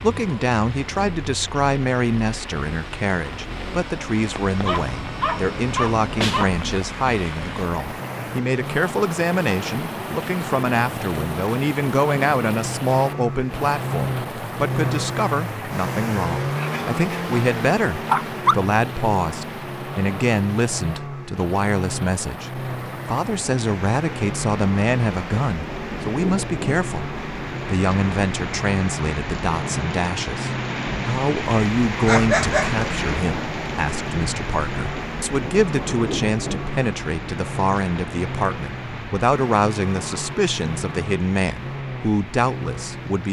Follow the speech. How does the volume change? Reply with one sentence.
The loudness of the speech stays about the same.